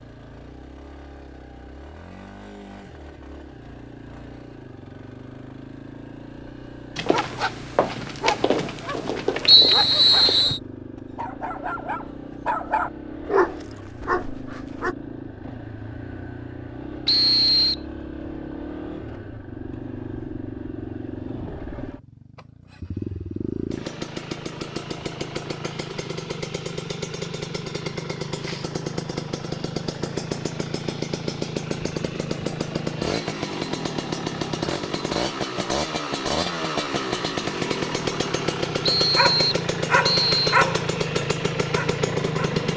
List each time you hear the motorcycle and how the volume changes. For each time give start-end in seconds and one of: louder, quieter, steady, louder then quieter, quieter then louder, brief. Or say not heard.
0.0-42.7 louder.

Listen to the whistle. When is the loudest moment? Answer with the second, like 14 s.
10 s.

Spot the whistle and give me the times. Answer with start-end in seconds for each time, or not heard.
9.4-10.6, 17.1-17.8, 38.8-40.5.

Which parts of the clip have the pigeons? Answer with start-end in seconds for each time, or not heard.
not heard.